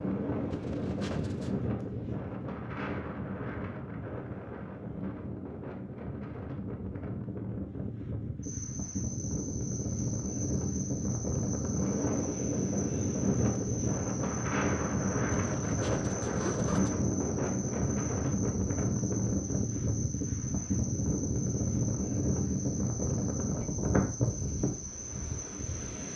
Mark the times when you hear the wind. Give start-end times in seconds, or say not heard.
0.0-26.1.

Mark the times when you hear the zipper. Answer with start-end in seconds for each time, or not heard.
0.5-1.6, 15.3-17.0.